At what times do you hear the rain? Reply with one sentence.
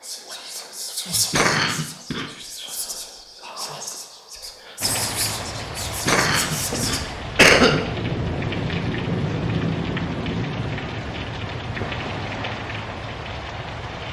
The rain can be heard from 4.8 to 14.0 s.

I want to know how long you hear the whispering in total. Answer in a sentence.
You can hear the whispering for 7 seconds altogether.